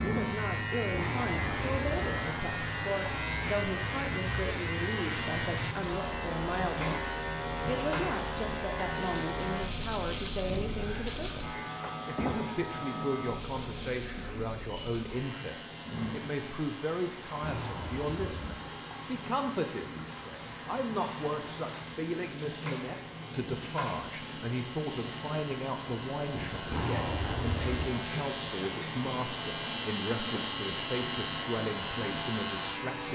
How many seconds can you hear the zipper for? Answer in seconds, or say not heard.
4 s.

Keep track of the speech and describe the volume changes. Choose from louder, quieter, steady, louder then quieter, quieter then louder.
steady.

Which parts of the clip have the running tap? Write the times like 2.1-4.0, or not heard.
0.0-33.1.